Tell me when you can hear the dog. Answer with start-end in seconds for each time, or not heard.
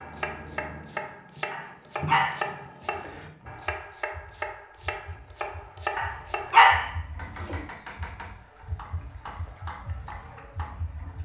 1.5-3.1, 6.0-7.5.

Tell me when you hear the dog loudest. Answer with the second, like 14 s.
7 s.